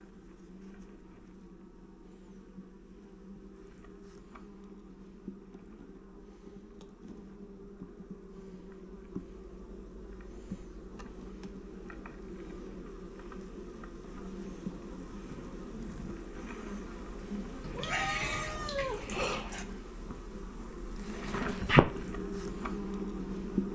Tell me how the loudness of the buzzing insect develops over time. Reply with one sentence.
The volume of the buzzing insect goes up.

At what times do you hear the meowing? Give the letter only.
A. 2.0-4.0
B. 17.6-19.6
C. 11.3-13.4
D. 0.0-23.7
B.